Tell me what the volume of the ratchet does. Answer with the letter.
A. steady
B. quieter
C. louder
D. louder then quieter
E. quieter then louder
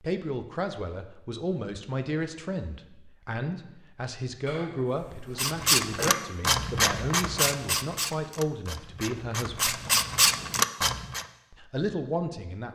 E.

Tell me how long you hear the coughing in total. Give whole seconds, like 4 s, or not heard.
2 s.